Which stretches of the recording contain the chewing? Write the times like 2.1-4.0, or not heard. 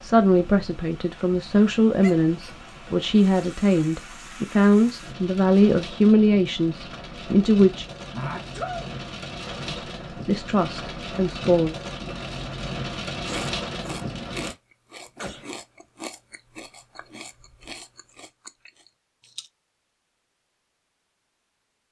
13.2-19.5.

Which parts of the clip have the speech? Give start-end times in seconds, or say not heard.
0.0-7.8, 9.7-11.8.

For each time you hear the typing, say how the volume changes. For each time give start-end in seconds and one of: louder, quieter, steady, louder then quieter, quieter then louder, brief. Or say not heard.
not heard.